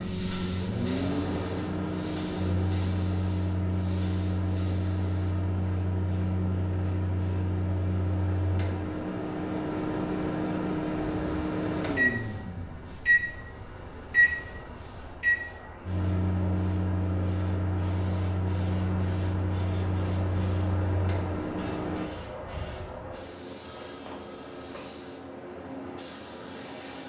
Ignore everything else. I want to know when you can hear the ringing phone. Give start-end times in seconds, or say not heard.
23.6-24.9.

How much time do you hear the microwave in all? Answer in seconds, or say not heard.
22 s.